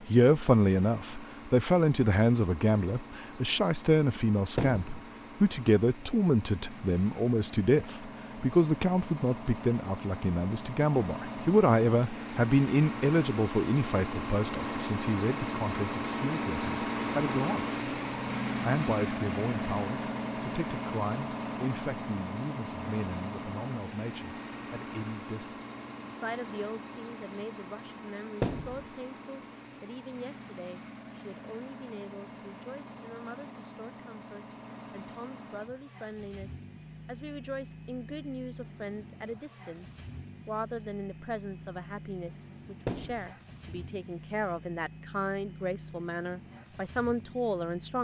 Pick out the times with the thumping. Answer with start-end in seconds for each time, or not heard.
4.5-5.0, 28.4-28.9, 42.9-43.3.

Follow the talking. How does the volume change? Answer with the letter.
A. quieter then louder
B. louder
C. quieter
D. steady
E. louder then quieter
A.